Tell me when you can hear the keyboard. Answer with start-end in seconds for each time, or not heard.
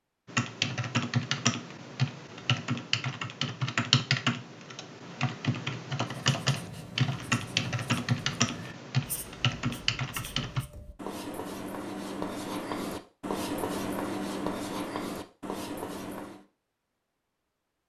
0.2-10.7.